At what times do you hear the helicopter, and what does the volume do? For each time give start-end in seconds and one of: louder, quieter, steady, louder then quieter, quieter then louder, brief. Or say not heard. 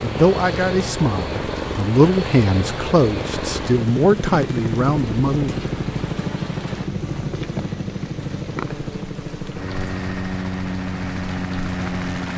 0.0-12.3 steady.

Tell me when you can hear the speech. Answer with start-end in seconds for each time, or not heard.
0.0-5.5.